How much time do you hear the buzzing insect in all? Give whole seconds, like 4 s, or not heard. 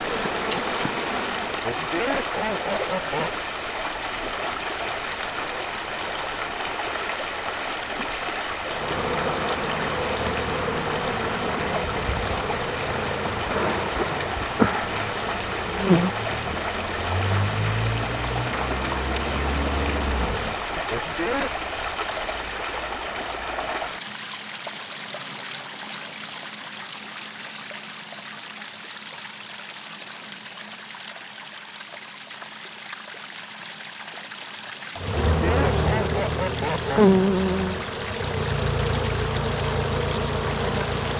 20 s.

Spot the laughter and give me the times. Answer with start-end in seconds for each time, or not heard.
1.6-3.4, 20.9-21.5, 35.2-37.0.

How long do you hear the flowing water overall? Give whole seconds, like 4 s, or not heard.
41 s.